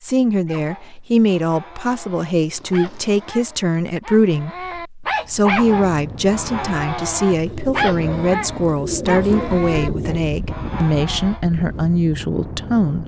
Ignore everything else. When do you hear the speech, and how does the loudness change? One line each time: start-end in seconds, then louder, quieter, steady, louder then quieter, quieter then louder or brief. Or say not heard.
0.0-13.0 steady.